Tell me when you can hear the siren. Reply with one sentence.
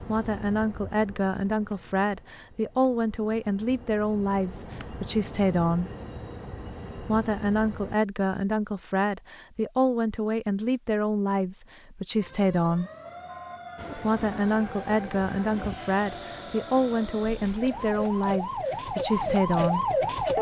You can hear the siren from 12.2 to 20.3 s.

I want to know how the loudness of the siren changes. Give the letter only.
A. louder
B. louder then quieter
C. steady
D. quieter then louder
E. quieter
A.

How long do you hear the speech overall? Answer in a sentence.
You can hear the speech for 18 seconds altogether.